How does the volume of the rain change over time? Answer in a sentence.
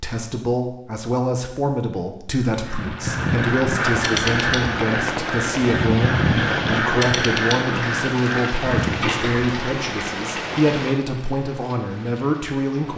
The loudness of the rain goes down.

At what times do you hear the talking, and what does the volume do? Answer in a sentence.
The talking can be heard from 0.0 to 12.9 s, at a steady volume.